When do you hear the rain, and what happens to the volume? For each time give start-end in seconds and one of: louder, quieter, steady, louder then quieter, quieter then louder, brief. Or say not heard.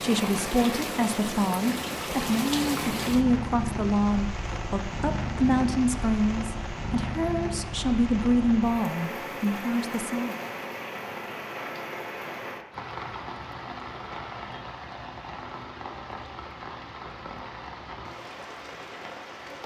0.0-19.6 quieter.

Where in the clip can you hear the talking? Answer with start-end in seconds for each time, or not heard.
0.0-10.3.